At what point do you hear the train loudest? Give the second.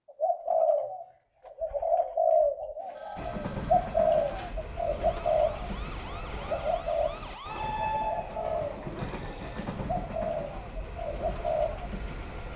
8 s.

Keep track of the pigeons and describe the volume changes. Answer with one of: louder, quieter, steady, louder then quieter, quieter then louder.
quieter.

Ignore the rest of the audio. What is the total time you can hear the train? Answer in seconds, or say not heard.
9 s.